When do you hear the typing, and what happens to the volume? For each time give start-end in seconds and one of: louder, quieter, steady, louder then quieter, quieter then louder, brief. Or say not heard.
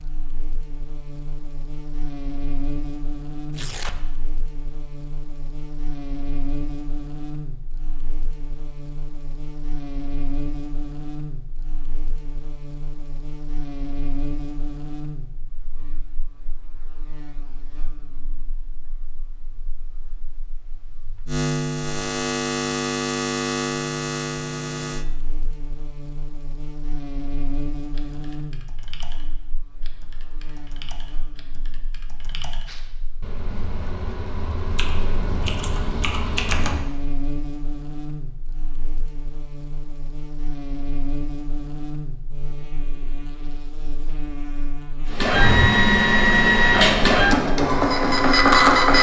27.9-36.9 louder.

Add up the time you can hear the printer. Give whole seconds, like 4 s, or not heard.
4 s.